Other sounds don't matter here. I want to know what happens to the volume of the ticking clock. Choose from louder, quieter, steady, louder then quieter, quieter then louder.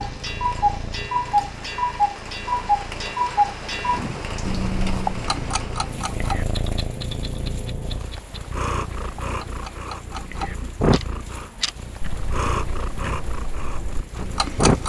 quieter.